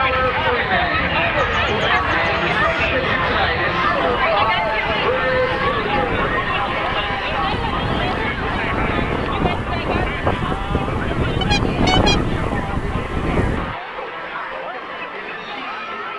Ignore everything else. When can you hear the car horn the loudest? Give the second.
12 s.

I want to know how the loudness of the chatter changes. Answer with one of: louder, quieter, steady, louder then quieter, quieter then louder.
quieter.